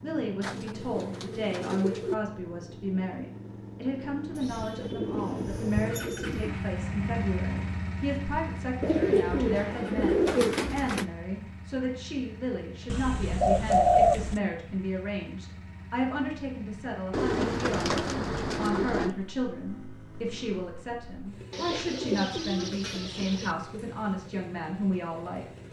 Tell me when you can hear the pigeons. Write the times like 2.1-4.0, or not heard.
0.4-2.1, 4.3-6.5, 8.8-11.1, 12.8-14.4, 17.1-19.1, 21.5-23.6.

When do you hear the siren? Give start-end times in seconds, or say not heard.
not heard.